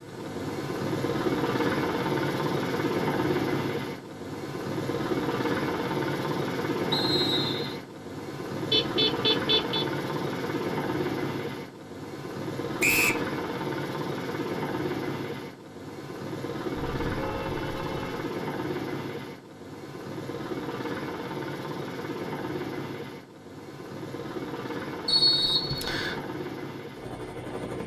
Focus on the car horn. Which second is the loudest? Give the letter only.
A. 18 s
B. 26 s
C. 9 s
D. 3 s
C.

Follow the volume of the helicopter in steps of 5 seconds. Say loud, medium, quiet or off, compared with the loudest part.
loud, loud, loud, medium, medium, medium.